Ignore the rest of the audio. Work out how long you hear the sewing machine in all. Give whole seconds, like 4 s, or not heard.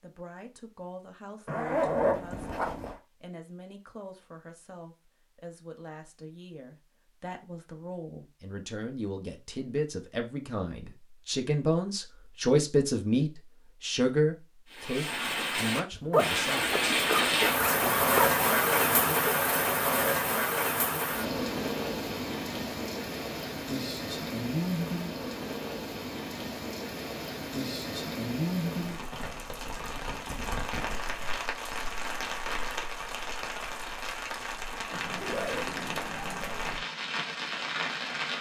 not heard.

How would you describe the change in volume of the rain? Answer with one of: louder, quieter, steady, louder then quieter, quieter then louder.
quieter.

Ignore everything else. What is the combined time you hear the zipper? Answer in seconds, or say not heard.
6 s.